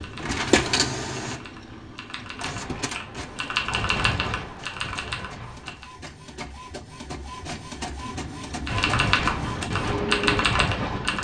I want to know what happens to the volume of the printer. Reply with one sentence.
The volume of the printer goes down, then up.